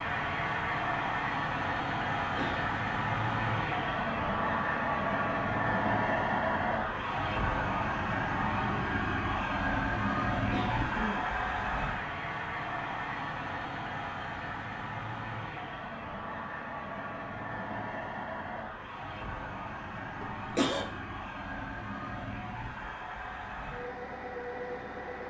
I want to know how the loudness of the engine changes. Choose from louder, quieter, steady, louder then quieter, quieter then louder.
quieter.